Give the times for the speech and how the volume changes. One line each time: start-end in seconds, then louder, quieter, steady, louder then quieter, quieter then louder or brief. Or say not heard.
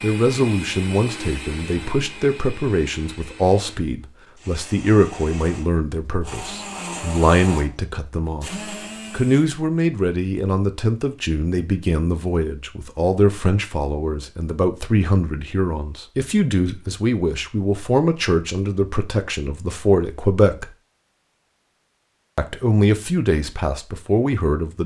0.0-20.7 steady
22.4-24.8 brief.